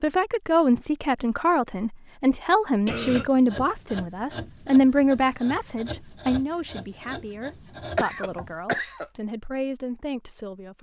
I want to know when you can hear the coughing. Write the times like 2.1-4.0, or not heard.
2.9-3.3, 8.0-9.1.